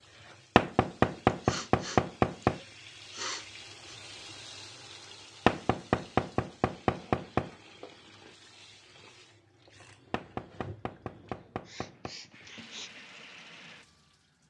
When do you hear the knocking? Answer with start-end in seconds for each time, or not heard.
0.6-2.6, 5.5-7.5, 10.1-12.2.